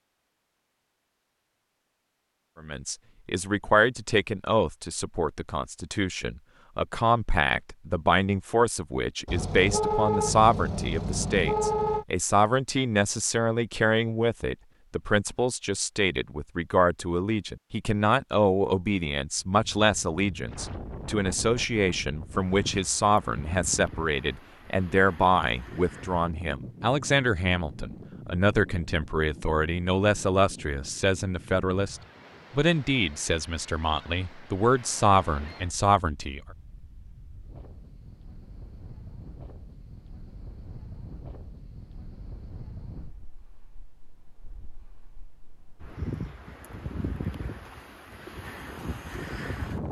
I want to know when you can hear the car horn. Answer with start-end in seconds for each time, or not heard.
9.2-12.1.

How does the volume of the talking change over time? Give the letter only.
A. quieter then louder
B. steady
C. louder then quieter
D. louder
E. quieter
B.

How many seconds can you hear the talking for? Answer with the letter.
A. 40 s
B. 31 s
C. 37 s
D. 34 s
D.